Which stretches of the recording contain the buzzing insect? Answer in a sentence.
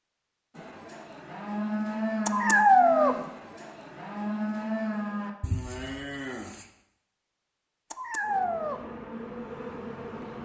The buzzing insect can be heard from 8.2 to 10.4 s.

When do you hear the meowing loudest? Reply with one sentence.
The volume of the meowing peaks at 3 seconds.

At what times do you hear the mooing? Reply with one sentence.
The mooing can be heard from 0.6 to 6.7 s.